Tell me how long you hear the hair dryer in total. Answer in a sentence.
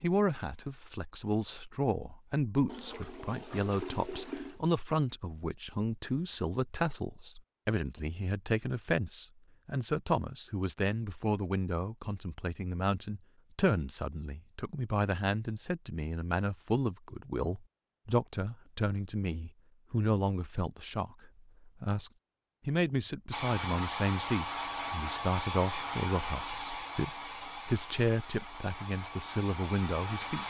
You can hear the hair dryer for 7 seconds altogether.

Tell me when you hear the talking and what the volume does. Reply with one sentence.
The talking can be heard from 0.0 to 30.4 s, at a steady volume.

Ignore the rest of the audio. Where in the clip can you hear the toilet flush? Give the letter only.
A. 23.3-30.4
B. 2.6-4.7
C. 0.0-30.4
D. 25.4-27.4
B.